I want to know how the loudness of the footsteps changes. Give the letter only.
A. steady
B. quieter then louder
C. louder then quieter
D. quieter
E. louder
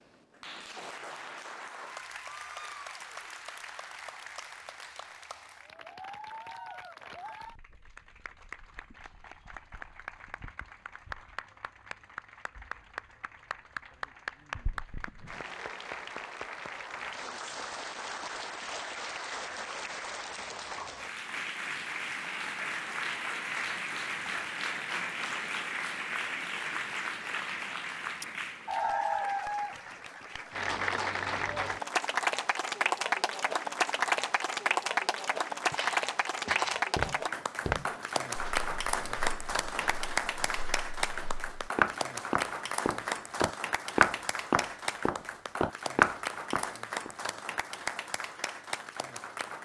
B.